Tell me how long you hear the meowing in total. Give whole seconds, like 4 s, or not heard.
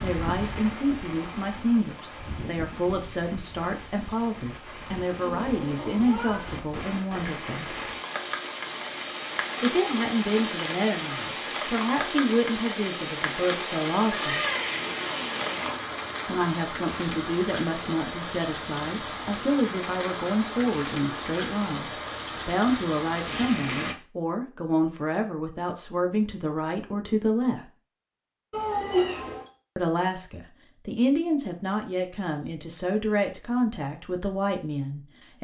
4 s.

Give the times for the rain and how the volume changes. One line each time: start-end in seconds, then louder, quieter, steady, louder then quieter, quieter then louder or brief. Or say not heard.
0.0-23.9 louder.